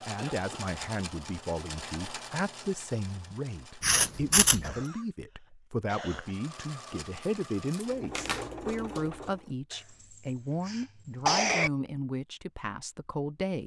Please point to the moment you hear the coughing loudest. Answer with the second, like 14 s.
11 s.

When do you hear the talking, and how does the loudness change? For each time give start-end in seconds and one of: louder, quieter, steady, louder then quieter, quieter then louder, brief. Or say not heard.
0.1-13.6 steady.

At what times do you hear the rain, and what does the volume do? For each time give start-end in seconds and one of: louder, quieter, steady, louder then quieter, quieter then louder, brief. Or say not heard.
not heard.